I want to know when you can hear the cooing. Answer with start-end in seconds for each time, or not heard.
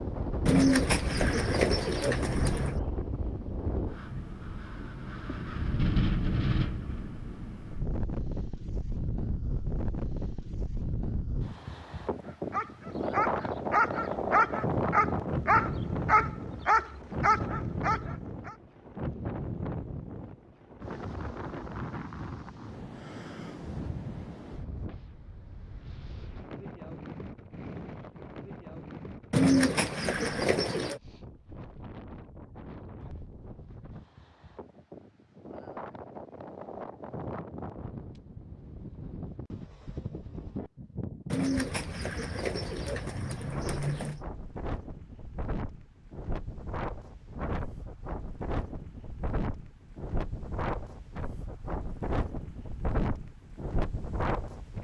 0.5-2.8, 29.3-31.0, 41.3-44.2.